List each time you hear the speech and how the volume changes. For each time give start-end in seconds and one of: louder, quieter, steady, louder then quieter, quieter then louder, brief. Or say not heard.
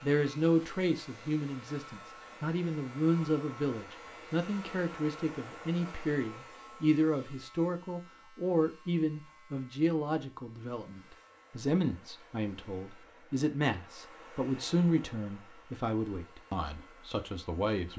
0.0-17.9 steady.